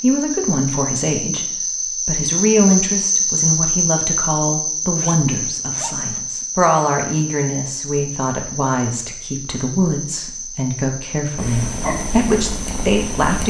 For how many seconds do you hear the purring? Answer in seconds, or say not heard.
2 s.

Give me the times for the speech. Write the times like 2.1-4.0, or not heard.
0.0-13.4.